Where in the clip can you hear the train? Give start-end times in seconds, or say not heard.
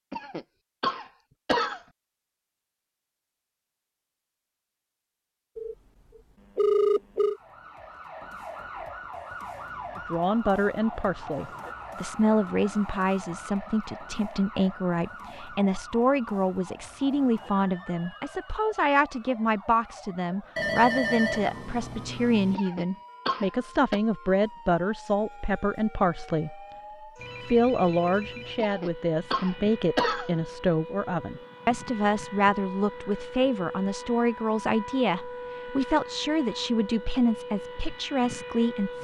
not heard.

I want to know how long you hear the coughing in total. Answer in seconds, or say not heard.
5 s.